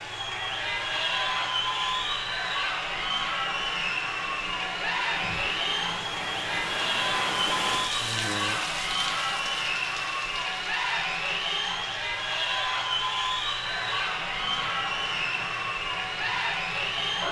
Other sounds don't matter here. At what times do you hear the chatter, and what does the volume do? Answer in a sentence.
The chatter can be heard from 0.0 to 17.2 s, at a steady volume.